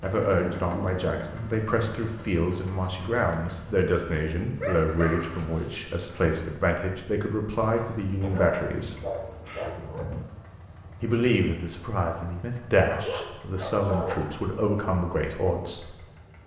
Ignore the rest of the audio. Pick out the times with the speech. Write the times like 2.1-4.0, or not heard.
0.0-8.9, 11.0-15.9.